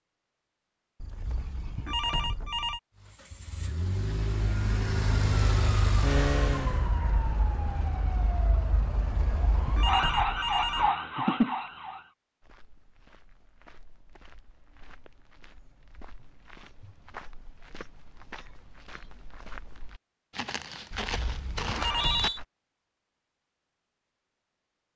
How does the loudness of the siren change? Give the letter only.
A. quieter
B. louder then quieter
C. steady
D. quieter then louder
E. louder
E.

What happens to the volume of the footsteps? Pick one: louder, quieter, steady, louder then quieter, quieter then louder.
louder.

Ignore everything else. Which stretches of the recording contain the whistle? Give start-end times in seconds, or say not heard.
21.7-22.4.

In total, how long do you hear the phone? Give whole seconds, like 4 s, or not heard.
5 s.